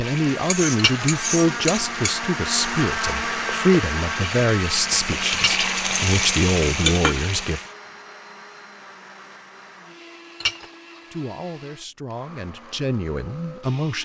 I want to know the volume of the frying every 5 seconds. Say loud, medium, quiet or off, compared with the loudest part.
medium, loud, off.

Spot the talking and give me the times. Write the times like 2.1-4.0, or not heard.
0.0-7.6, 11.1-14.0.